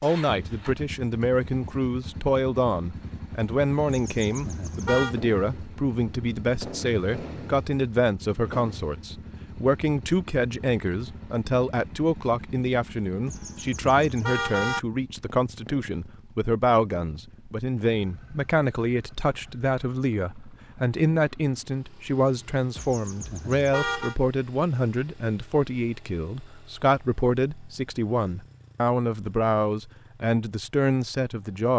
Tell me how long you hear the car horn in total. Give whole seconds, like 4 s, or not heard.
4 s.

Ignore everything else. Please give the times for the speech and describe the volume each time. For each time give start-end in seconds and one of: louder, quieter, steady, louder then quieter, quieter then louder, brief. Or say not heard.
0.0-31.7 steady.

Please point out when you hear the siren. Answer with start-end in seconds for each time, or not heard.
not heard.